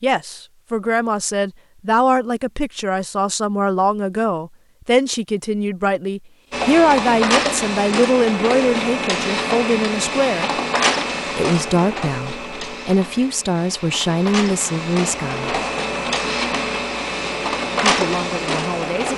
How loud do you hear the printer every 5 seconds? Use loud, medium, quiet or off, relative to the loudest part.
off, loud, loud, loud.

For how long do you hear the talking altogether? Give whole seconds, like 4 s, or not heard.
16 s.